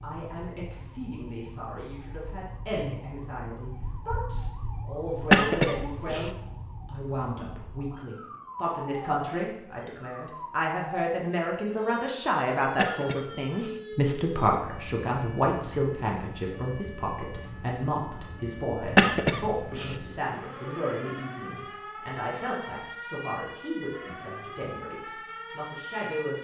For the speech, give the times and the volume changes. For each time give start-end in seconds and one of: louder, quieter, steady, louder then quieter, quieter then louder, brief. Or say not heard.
0.0-26.3 louder then quieter.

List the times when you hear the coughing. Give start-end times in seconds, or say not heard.
5.2-6.3, 12.7-13.8, 18.8-19.9.